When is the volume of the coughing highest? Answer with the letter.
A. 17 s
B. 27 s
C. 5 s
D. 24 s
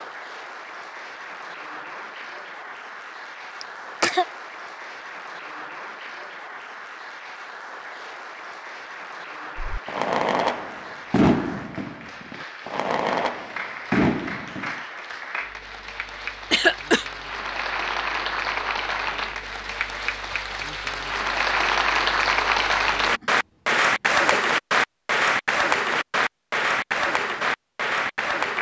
A.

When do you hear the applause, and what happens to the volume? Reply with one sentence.
You can hear the applause from 0.0 to 28.5 s, getting louder.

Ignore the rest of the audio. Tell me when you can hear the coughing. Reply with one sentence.
You can hear the coughing from 3.6 to 4.2 s, from 16.5 to 17.1 s and from 23.1 to 24.4 s.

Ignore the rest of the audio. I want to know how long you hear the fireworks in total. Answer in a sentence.
The fireworks can be heard for 5 seconds in total.